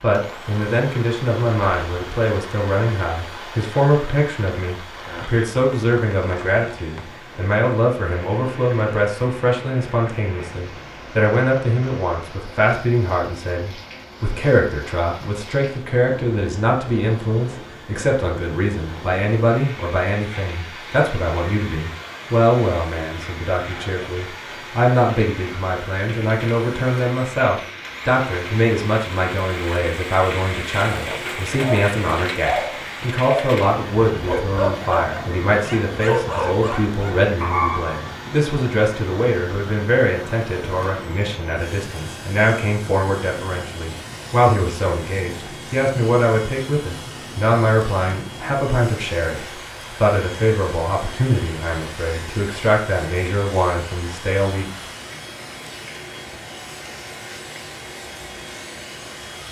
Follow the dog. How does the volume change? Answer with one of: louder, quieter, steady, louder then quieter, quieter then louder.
quieter then louder.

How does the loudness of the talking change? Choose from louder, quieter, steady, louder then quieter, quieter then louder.
steady.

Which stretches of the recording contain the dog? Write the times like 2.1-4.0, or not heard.
31.6-38.1.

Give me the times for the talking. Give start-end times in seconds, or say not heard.
0.0-54.6.